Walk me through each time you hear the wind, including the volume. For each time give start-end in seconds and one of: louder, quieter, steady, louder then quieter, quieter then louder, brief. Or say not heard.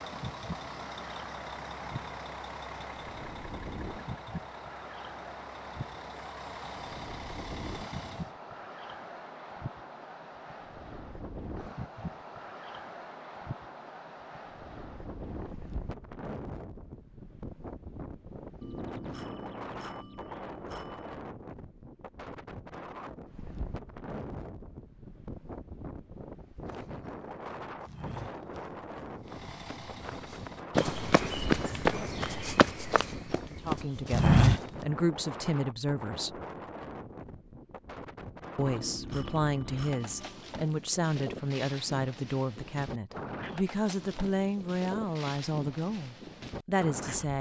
0.0-47.3 steady.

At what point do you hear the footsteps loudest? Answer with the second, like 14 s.
34 s.